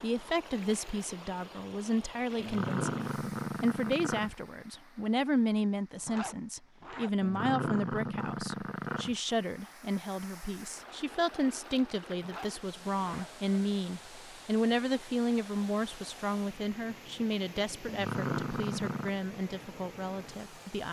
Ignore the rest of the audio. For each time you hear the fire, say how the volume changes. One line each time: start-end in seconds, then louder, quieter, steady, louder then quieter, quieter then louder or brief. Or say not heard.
not heard.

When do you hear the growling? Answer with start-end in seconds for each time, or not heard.
2.4-4.3, 7.2-9.2, 17.9-19.1.